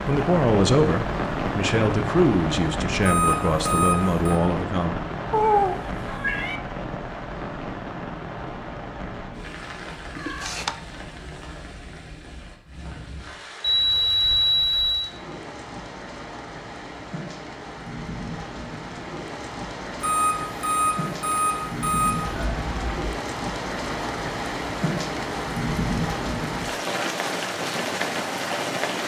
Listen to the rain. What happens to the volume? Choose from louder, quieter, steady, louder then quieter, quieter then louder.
quieter then louder.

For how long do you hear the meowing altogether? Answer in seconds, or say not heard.
3 s.